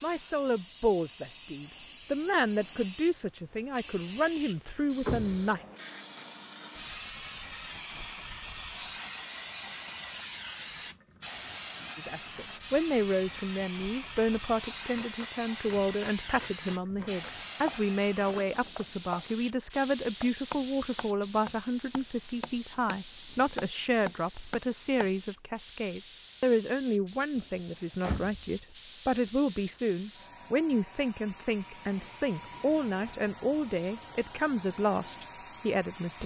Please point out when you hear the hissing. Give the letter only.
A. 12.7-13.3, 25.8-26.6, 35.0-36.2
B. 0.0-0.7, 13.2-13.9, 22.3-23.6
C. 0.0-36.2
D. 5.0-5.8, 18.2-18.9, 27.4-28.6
C.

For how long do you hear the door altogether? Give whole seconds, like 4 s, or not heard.
3 s.